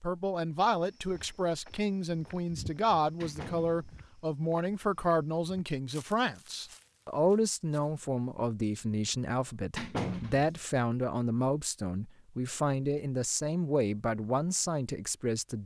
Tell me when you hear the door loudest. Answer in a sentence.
The loudest moment of the door is at 10 seconds.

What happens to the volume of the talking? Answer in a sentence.
The volume of the talking stays about the same.